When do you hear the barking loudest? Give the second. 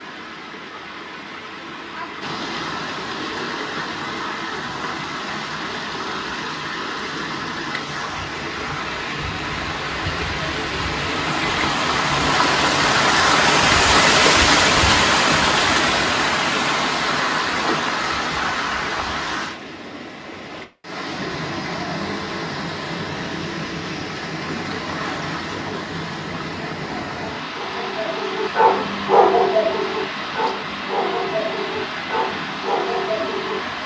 29 s.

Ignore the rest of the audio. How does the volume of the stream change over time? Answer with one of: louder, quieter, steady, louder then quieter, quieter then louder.
louder then quieter.